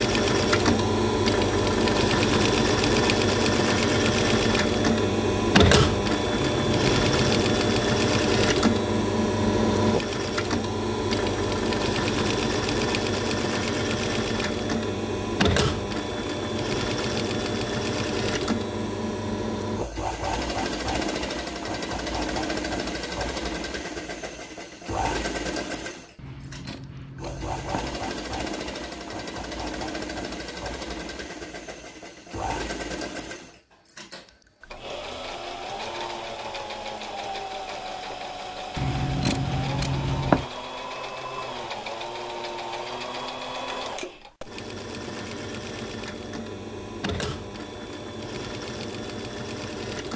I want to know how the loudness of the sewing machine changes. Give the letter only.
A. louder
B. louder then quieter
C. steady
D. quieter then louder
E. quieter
E.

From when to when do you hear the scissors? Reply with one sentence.
The scissors can be heard from 6.3 to 7.4 s, from 26.1 to 28.0 s and from 38.8 to 40.5 s.